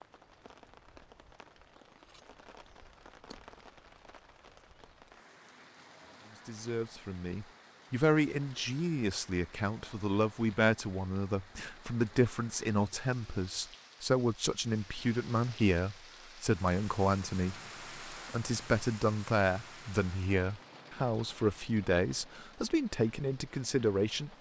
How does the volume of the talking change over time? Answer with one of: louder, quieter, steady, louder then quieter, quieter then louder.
steady.